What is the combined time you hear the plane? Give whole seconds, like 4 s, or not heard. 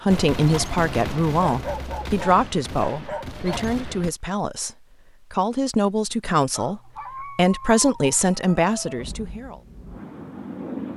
2 s.